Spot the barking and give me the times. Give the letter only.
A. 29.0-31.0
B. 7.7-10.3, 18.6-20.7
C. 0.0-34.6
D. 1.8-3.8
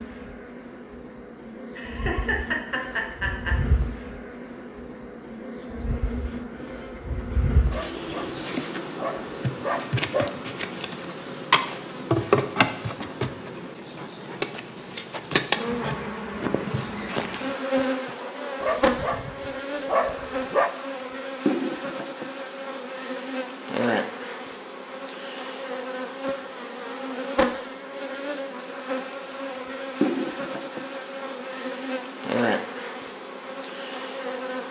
B.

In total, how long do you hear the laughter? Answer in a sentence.
You can hear the laughter for 2 seconds altogether.